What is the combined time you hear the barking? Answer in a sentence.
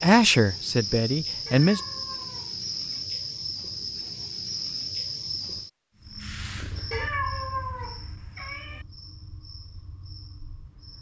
You can't hear the barking here.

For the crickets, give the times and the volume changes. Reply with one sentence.
The crickets can be heard from 0.0 to 10.9 s, getting quieter.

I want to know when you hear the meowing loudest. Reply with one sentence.
The volume of the meowing peaks at 7 seconds.